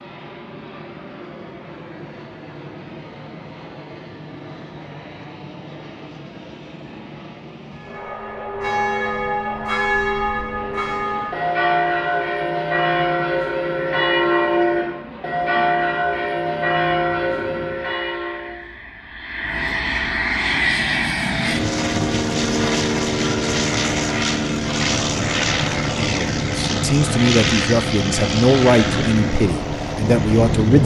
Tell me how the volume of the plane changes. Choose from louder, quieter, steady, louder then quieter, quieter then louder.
louder.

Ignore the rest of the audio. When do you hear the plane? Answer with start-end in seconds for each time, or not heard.
0.0-30.8.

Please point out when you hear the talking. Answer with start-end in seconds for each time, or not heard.
26.0-30.8.